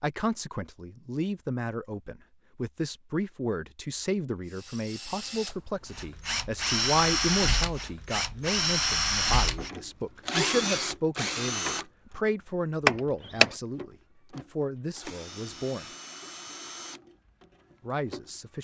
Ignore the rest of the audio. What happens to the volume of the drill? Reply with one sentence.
The loudness of the drill goes down.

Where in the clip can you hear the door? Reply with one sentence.
You can hear the door from 12.8 to 13.5 s.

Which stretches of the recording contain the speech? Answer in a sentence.
The speech can be heard from 0.0 to 15.8 s and from 17.9 to 18.5 s.